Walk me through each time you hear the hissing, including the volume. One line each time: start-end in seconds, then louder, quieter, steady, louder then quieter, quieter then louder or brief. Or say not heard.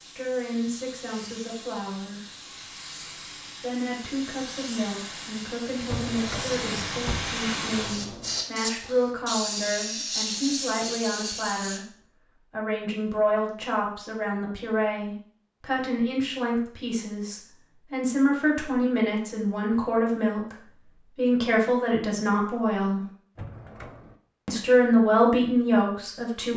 0.0-11.8 louder.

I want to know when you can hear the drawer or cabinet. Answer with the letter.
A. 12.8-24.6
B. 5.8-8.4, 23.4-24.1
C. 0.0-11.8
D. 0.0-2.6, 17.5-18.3
B.